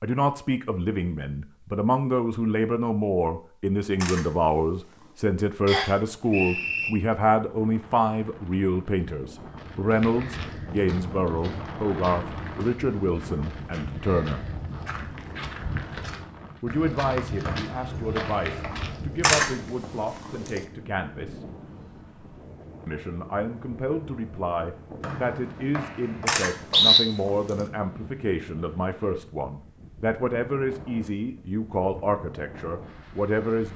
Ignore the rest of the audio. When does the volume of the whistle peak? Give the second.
27 s.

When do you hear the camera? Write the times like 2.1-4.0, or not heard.
4.0-5.2, 19.2-20.6, 26.2-27.6.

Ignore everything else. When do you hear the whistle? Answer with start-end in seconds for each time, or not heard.
5.7-6.9, 17.4-18.8, 25.0-27.0.